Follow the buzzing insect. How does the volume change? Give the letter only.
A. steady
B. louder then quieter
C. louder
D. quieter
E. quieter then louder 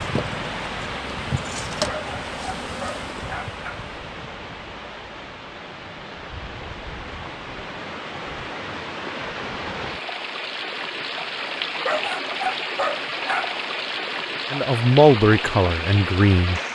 B.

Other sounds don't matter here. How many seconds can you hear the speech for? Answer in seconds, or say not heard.
2 s.